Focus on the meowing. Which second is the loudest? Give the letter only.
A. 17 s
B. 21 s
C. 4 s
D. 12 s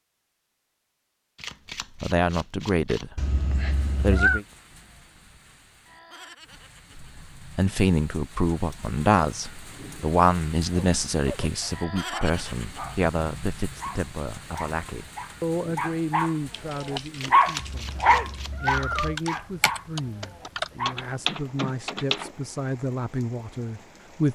C.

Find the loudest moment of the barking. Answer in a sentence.
The volume of the barking peaks at 17 seconds.